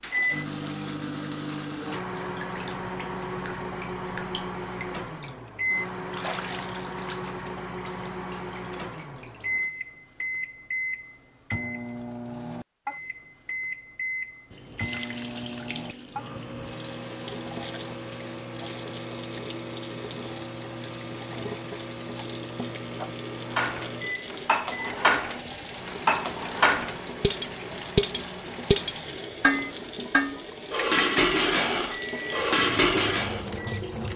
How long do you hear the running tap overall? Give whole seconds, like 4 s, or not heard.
29 s.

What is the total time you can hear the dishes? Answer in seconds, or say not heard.
10 s.